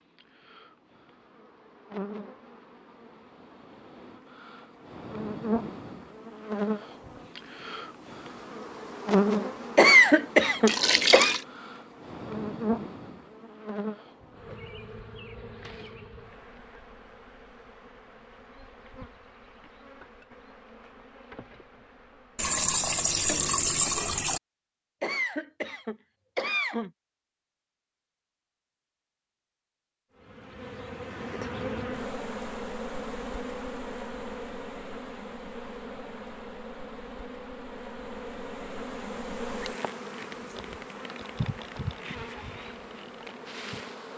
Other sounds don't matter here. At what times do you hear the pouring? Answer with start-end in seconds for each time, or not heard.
10.7-11.4, 22.4-24.4.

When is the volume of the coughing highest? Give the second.
10 s.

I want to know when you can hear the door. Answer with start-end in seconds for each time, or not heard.
not heard.